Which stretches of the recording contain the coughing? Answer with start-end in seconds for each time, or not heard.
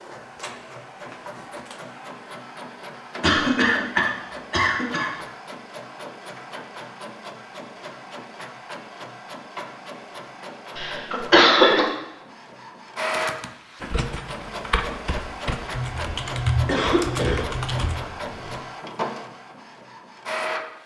3.2-5.1, 10.8-11.8, 16.6-17.4.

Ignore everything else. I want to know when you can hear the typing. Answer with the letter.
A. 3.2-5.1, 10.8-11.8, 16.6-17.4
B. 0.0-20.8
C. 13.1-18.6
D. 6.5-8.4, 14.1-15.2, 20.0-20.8
C.